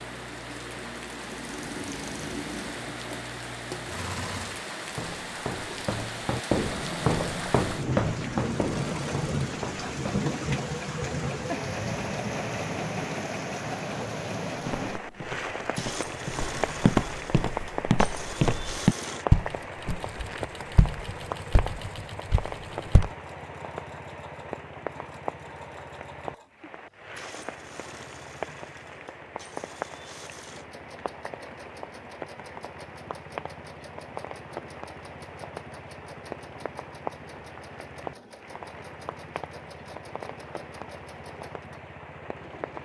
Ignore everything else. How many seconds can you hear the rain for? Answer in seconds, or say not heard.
43 s.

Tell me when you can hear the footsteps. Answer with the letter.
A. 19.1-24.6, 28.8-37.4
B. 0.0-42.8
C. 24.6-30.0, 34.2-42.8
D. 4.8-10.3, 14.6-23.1
D.